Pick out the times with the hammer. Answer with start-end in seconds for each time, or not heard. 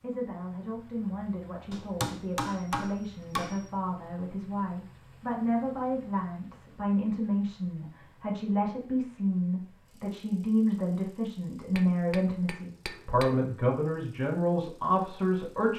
1.7-3.6, 11.8-13.3.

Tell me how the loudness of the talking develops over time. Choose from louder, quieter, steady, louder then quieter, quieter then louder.
louder.